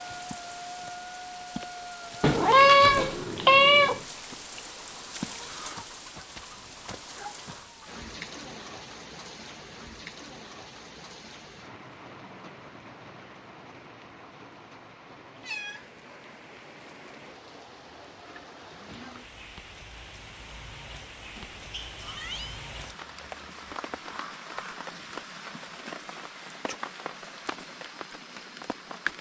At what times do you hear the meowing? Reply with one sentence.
You can hear the meowing from 2.2 to 4.0 s, from 15.4 to 16.4 s and from 21.4 to 22.6 s.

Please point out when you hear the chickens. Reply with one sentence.
The chickens can't be heard in this clip.